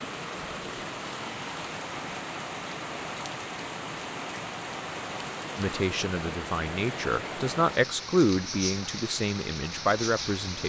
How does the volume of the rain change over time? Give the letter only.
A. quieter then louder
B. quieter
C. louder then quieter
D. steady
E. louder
D.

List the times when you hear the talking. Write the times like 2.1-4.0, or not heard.
5.5-10.6.